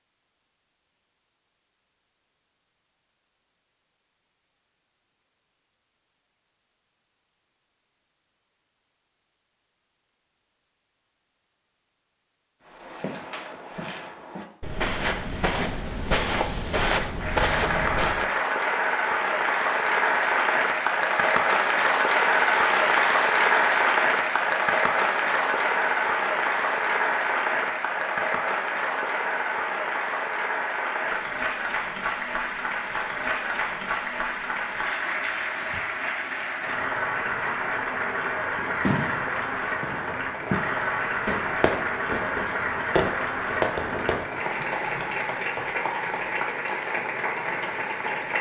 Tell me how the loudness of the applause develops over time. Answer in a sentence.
The volume of the applause goes down.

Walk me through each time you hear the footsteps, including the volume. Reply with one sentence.
You can hear the footsteps from 12.7 to 18.2 s, getting louder.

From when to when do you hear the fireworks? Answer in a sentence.
You can hear the fireworks from 38.5 to 44.2 s.